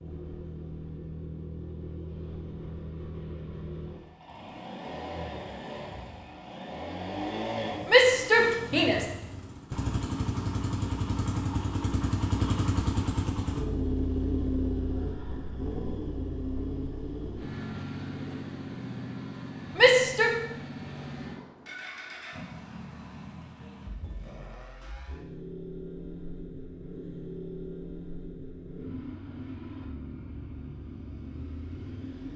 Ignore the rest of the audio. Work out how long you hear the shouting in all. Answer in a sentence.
You can hear the shouting for 2 seconds altogether.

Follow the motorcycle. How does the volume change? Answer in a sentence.
The loudness of the motorcycle goes up, then down.